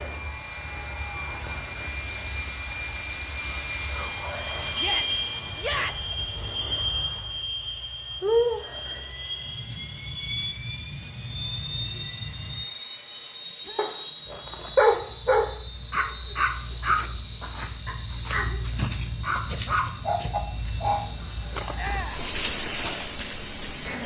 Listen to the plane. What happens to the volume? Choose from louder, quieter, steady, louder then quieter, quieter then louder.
quieter.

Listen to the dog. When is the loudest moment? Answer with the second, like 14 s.
15 s.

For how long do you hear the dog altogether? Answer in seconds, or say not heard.
7 s.